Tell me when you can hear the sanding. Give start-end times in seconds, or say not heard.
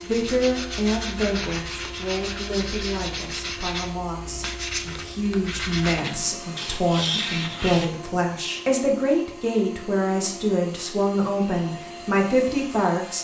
0.0-7.8.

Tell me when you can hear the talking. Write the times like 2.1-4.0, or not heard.
0.1-13.1.